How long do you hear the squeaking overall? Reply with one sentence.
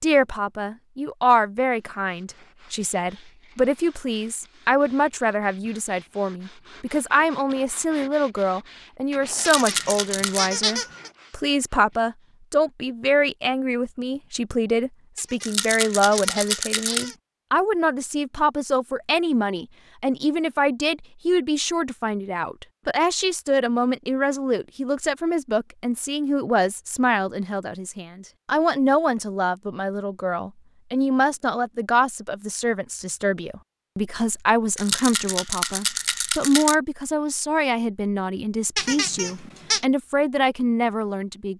You can hear the squeaking for 5 seconds altogether.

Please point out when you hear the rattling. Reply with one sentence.
You can hear the rattling from 9.3 to 10.4 s, from 15.4 to 17.1 s and from 34.8 to 36.8 s.